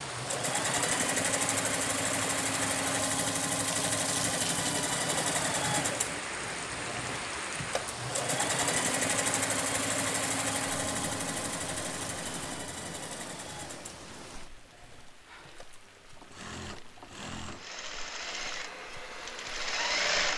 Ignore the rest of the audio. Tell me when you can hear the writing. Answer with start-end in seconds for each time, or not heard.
not heard.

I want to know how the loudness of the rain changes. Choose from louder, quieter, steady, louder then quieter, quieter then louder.
quieter.